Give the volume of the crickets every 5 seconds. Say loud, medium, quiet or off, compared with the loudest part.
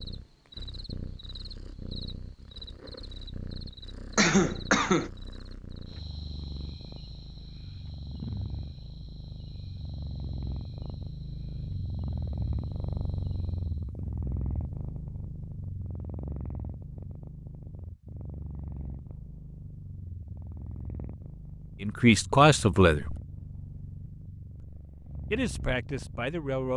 loud, loud, medium, off, off, off.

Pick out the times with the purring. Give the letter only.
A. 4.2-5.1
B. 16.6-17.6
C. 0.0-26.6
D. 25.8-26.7
C.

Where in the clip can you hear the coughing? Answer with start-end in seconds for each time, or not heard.
4.2-5.1.